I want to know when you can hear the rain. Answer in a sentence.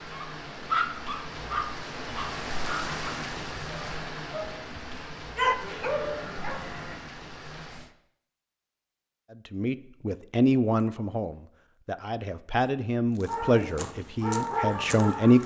The rain can be heard from 0.0 to 7.9 s.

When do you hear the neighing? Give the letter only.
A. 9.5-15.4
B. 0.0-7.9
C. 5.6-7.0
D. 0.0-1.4
C.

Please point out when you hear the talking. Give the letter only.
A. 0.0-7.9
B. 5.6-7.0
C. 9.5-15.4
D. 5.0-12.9
C.